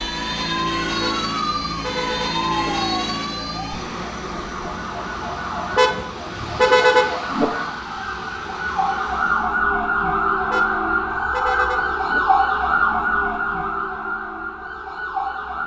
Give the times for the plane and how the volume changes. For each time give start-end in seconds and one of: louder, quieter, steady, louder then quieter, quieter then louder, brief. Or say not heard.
0.0-9.7 quieter.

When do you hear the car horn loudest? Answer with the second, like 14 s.
7 s.